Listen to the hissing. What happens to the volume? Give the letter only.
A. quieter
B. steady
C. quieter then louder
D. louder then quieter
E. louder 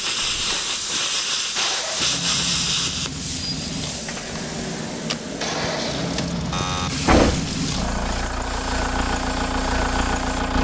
A.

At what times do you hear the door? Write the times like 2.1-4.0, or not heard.
7.0-7.6.